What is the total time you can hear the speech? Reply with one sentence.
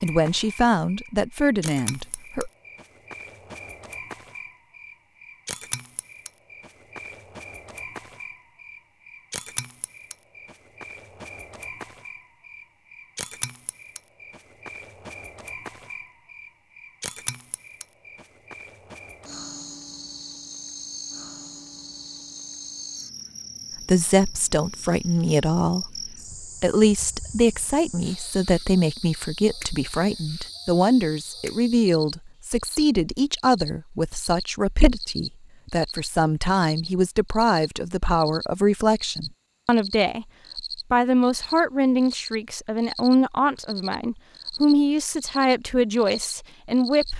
You can hear the speech for 25 seconds altogether.